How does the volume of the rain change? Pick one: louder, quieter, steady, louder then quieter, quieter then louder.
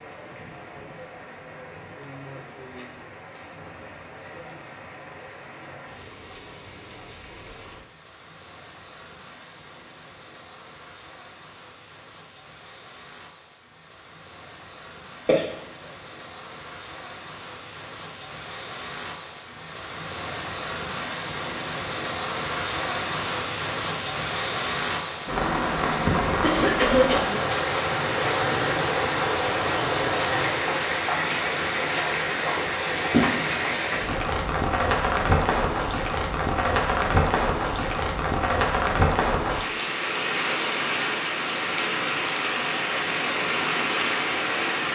louder.